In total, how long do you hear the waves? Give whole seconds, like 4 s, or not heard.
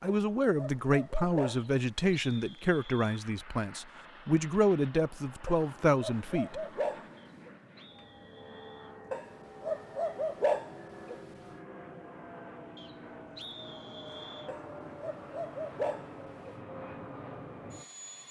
not heard.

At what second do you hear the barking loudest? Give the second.
10 s.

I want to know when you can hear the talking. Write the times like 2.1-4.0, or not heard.
0.0-6.7.